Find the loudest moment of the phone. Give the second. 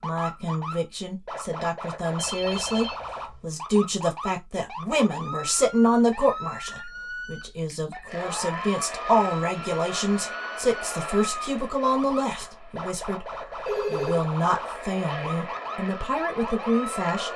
14 s.